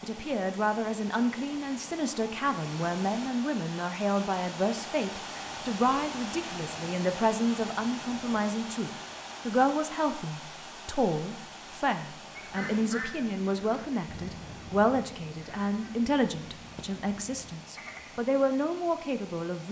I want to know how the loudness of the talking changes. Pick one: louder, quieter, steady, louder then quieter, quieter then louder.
steady.